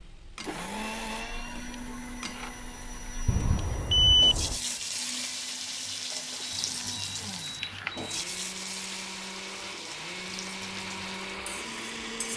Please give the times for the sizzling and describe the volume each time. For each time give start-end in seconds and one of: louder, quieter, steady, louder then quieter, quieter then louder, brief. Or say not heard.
0.0-12.3 louder then quieter.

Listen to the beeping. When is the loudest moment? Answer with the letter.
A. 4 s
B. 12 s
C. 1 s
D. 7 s
A.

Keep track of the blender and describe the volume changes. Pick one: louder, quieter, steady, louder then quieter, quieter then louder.
quieter then louder.